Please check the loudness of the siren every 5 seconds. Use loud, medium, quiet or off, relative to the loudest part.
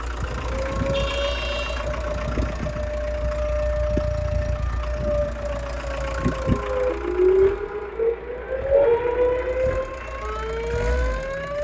medium, loud, medium.